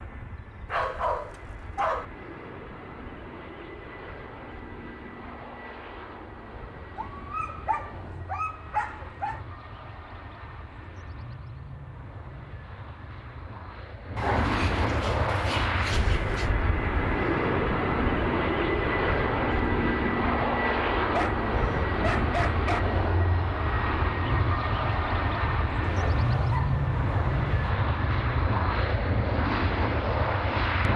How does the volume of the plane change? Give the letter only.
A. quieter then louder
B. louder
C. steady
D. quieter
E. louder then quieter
B.